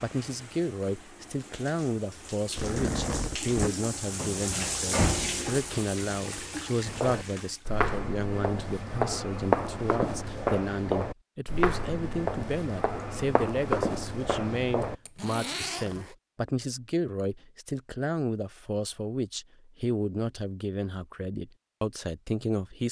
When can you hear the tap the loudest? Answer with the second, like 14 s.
5 s.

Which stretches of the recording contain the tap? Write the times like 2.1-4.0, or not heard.
0.0-7.7.